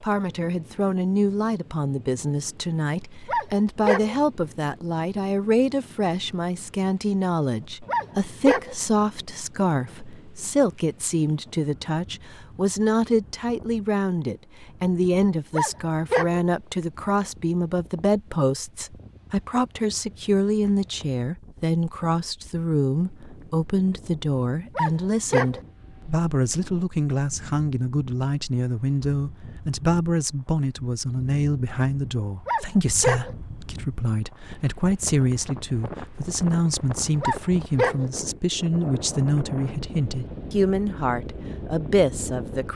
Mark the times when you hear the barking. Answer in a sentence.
You can hear the barking from 3.2 to 4.2 s, from 7.8 to 8.8 s, from 15.5 to 16.4 s, from 24.8 to 25.6 s, from 32.5 to 33.4 s and from 37.2 to 38.1 s.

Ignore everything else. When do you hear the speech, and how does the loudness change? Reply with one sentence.
The speech can be heard from 0.0 to 42.7 s, at a steady volume.